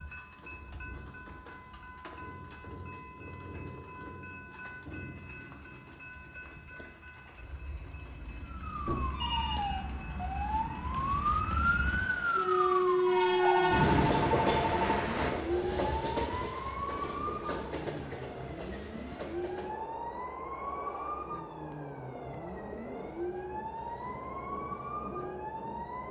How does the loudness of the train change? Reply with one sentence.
The loudness of the train goes up, then down.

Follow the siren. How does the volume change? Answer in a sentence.
The volume of the siren goes down.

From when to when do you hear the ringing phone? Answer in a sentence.
The ringing phone can be heard from 8.8 to 9.7 s and from 13.4 to 15.1 s.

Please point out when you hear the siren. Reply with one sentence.
You can hear the siren from 8.4 to 26.0 s.